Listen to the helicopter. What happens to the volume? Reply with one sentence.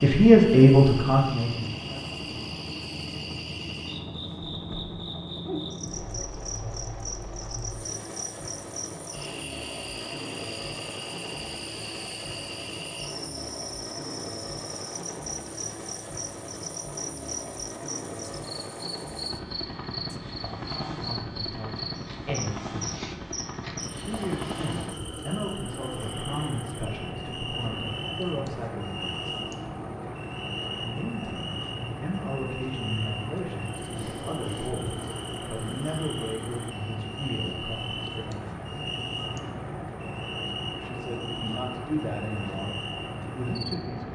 The volume of the helicopter stays about the same.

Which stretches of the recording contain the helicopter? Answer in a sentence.
You can hear the helicopter from 0.0 to 44.1 s.